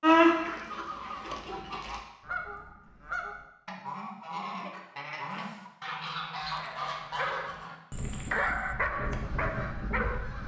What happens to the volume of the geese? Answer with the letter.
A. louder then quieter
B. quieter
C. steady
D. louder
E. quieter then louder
C.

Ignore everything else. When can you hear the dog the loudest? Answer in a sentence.
The loudest moment of the dog is at 8 seconds.